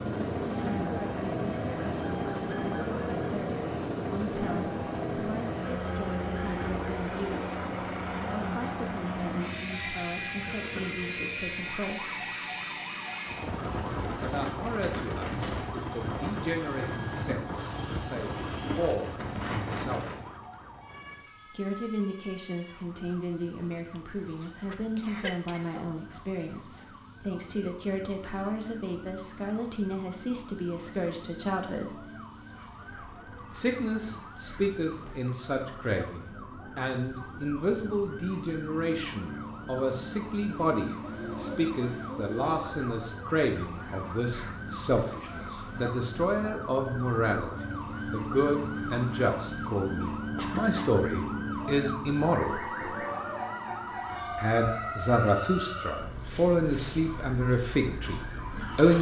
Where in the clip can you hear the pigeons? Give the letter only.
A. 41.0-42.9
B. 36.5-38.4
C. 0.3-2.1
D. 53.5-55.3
A.